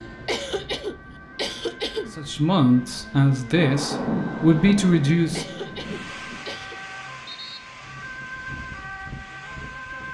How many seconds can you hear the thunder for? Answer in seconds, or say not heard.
3 s.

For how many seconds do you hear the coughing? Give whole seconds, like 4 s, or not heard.
3 s.